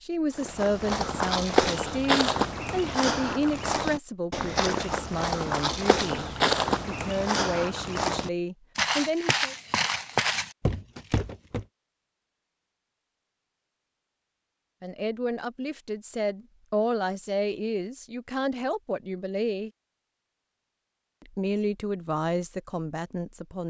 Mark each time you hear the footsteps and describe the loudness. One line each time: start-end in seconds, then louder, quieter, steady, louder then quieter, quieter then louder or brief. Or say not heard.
0.3-11.7 steady.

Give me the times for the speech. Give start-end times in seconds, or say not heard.
0.0-6.2, 6.8-9.6, 14.8-19.7, 21.2-23.6.